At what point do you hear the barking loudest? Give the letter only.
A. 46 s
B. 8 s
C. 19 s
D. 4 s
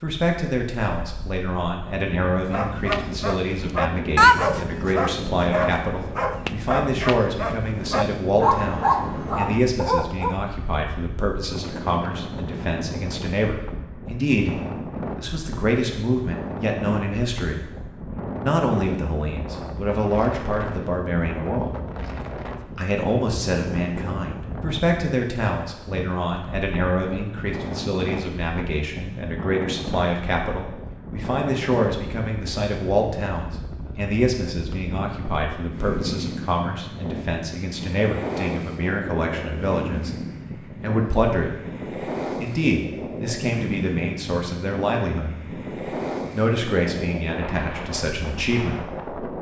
D.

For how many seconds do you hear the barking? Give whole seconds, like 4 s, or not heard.
8 s.